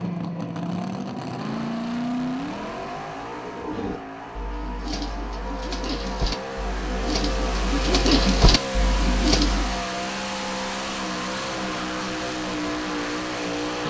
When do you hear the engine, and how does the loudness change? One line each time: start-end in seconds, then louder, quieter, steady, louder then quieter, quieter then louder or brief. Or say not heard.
0.0-13.8 quieter then louder.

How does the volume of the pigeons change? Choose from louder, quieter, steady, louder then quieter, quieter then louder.
louder.